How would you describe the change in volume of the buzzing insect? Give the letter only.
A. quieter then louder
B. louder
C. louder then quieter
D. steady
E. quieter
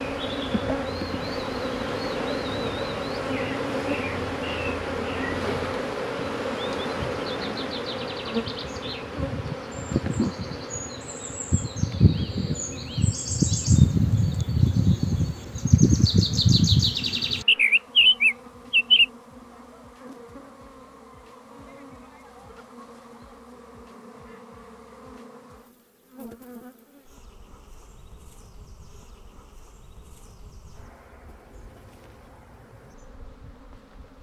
E.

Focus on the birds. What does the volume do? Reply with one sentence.
The volume of the birds goes up.